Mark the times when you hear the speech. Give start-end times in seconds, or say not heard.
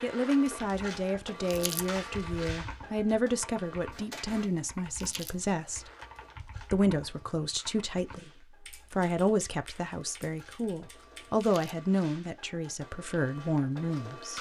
0.0-5.8, 6.7-14.3.